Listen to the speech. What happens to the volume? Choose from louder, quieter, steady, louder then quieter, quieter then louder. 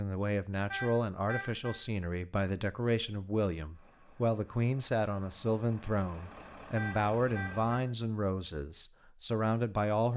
steady.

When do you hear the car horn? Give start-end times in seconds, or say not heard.
0.7-1.8, 6.8-7.8.